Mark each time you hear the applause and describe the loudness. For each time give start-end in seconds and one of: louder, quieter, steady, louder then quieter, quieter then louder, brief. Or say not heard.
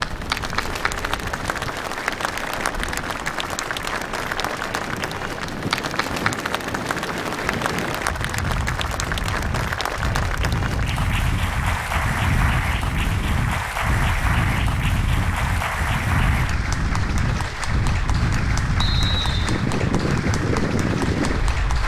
0.0-21.8 steady.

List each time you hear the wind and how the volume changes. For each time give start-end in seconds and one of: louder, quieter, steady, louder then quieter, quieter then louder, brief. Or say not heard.
0.0-21.8 louder.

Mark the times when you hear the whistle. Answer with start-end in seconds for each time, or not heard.
18.8-19.6.